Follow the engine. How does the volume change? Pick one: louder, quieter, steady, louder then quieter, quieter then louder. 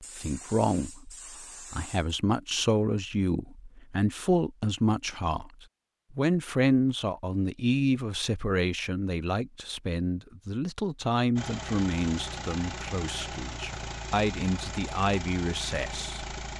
steady.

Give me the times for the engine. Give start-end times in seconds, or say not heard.
11.3-16.5.